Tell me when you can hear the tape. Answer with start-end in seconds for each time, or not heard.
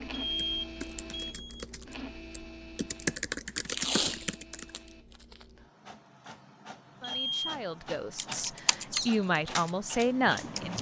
3.6-5.5.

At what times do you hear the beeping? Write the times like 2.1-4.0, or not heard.
0.1-1.6, 7.0-7.5.